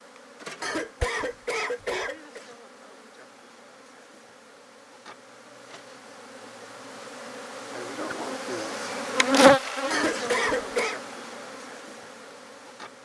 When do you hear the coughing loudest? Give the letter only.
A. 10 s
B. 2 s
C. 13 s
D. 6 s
A.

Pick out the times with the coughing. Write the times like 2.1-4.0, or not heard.
0.6-2.5, 9.9-11.0.